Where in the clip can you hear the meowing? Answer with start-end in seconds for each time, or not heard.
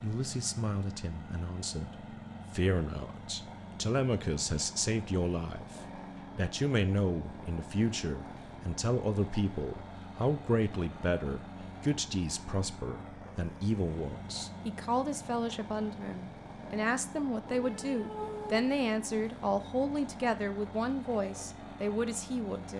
17.4-18.7.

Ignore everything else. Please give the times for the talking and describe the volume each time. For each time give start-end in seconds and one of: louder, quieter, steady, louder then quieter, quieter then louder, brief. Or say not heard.
0.0-22.7 steady.